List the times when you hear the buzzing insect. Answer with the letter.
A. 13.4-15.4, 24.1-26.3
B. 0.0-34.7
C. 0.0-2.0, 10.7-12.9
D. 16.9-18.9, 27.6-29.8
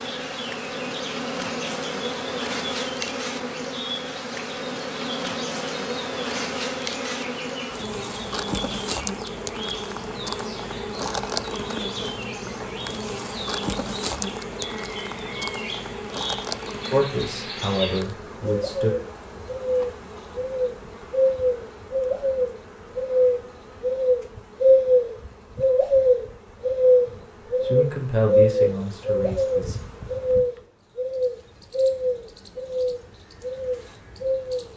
B.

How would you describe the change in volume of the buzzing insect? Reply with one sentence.
The loudness of the buzzing insect goes down.